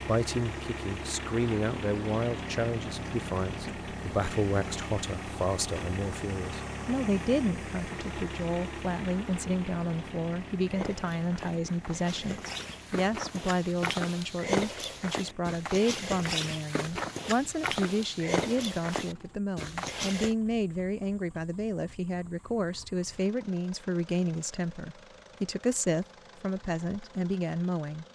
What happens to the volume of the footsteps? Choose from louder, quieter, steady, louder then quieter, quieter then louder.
louder.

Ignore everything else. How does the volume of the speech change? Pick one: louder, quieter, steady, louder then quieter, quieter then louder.
steady.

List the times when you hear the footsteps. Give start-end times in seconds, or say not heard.
10.6-20.4.